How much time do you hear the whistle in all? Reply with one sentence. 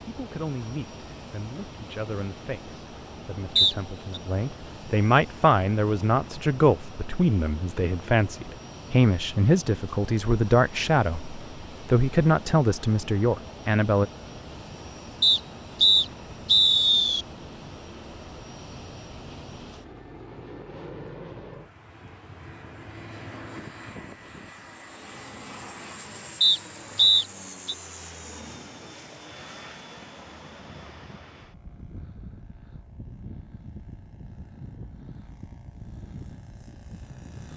You can hear the whistle for 4 seconds altogether.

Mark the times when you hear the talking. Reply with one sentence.
You can hear the talking from 0.0 to 14.1 s.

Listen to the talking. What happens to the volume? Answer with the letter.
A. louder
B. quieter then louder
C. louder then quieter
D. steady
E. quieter
A.